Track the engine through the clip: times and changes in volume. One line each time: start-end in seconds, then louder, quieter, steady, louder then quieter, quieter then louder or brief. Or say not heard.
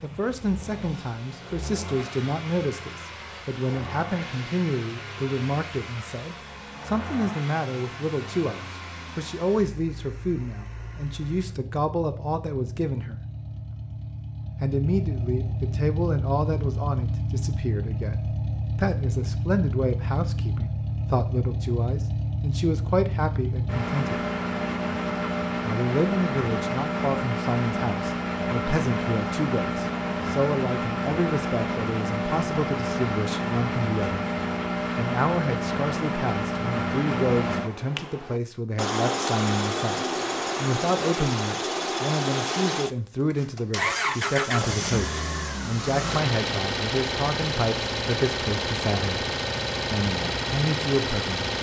0.0-51.5 louder.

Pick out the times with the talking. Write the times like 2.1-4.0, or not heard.
0.0-13.2, 14.6-24.2, 25.6-34.2, 35.0-49.2, 49.9-51.5.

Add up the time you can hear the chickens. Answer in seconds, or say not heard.
not heard.